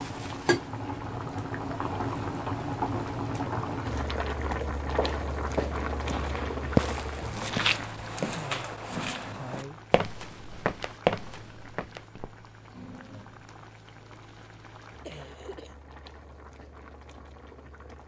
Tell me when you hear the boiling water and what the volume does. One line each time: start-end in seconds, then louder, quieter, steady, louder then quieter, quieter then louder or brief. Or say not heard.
0.0-18.0 quieter.